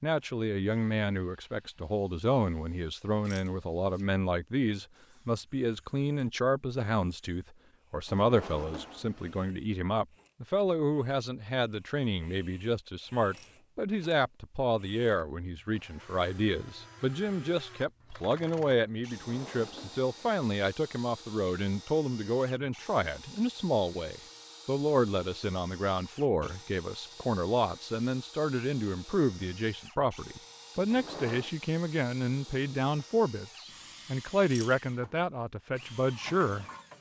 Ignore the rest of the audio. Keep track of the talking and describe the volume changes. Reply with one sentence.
The loudness of the talking stays about the same.